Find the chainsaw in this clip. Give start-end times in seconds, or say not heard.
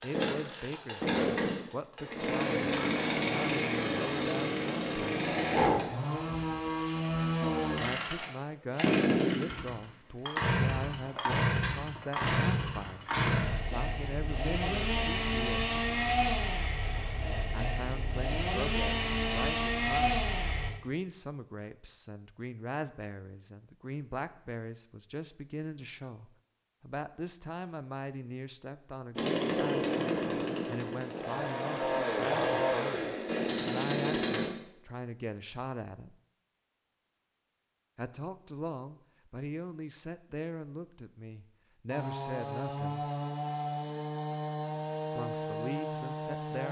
0.0-20.7, 29.1-34.5, 41.9-46.6.